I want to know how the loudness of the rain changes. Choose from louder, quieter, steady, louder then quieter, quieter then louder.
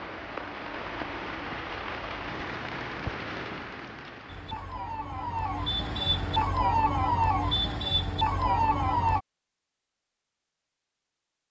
quieter.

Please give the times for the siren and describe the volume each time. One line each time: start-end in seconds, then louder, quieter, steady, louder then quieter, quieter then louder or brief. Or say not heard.
4.2-9.2 louder.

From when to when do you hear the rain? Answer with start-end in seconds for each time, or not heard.
0.0-6.5.